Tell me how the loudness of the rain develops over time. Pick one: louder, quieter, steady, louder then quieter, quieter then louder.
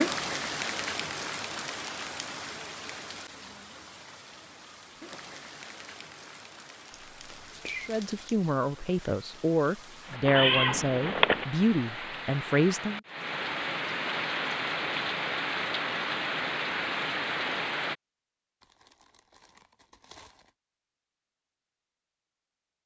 quieter then louder.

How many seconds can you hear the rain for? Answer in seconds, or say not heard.
18 s.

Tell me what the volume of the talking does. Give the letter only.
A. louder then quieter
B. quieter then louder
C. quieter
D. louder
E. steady
E.